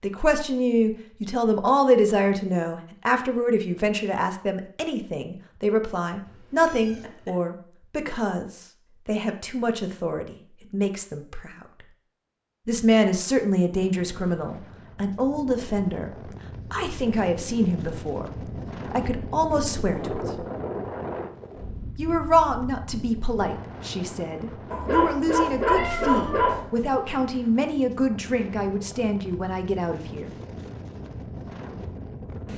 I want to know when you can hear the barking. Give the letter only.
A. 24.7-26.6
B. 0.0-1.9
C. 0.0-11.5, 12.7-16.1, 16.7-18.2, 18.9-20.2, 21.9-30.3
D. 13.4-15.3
A.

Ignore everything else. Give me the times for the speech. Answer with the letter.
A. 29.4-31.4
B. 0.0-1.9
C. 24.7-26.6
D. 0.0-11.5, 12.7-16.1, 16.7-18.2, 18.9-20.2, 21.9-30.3
D.